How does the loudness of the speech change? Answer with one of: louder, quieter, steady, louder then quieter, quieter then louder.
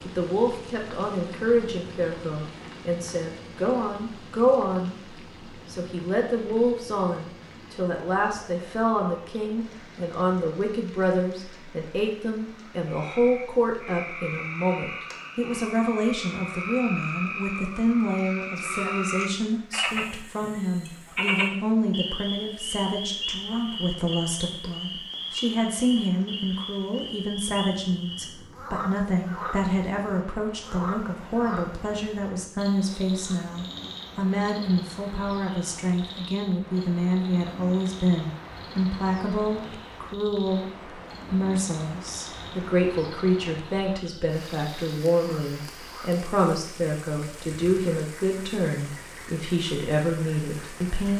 steady.